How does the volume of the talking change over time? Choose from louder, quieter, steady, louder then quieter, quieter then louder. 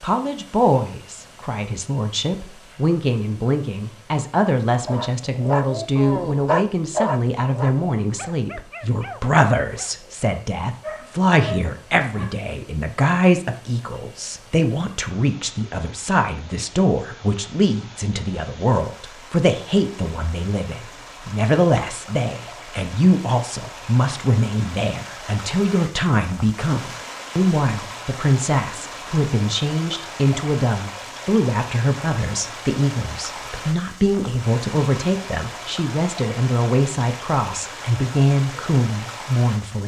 steady.